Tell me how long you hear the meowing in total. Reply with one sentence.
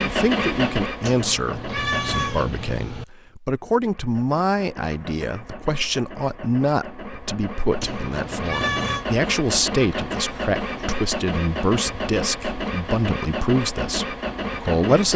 The meowing can be heard for 3 seconds in total.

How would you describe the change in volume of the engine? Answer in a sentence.
The loudness of the engine goes down, then up.